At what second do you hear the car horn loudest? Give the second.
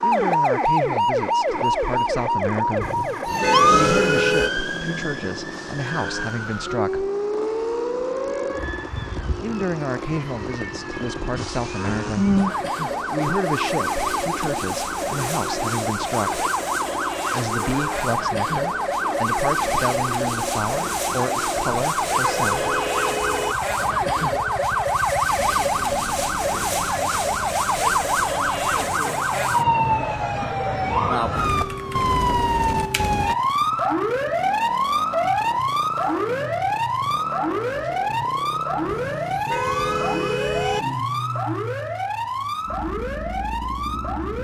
4 s.